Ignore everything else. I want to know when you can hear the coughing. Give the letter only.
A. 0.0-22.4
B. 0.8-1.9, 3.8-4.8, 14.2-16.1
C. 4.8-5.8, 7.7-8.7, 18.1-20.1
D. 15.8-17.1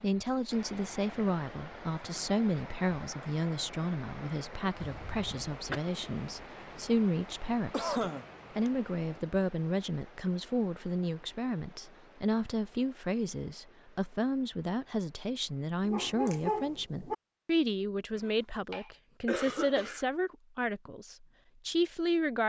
C.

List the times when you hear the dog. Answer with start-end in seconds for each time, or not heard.
15.8-17.1.